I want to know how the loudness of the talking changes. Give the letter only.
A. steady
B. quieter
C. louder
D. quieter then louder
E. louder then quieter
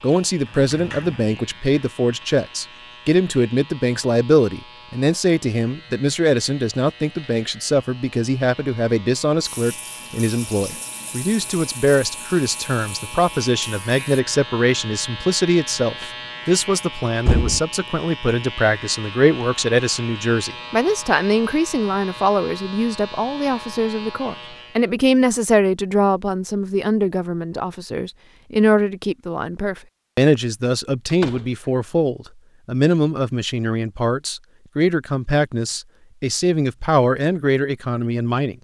A.